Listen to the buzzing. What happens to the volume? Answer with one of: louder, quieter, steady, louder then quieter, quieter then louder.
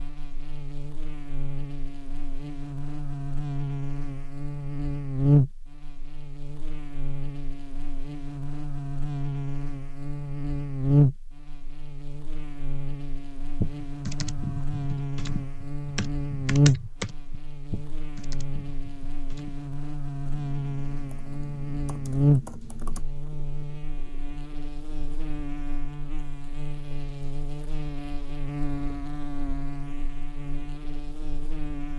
quieter.